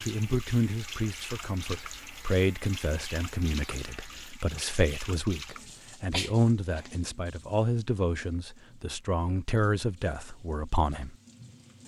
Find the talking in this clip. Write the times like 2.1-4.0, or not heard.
0.0-11.2.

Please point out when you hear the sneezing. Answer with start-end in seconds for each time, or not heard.
5.5-6.9.